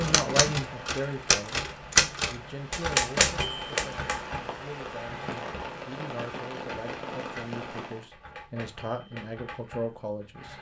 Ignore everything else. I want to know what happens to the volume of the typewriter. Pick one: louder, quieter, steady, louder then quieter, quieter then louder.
quieter.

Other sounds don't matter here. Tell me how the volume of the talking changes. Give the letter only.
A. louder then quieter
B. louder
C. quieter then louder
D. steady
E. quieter
C.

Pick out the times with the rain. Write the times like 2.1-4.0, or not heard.
0.0-8.1.